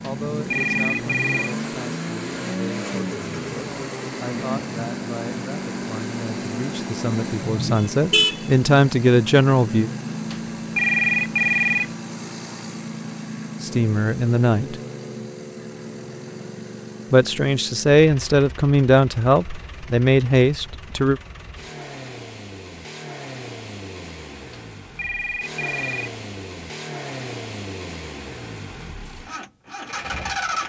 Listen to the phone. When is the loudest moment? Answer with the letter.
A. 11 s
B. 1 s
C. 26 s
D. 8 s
A.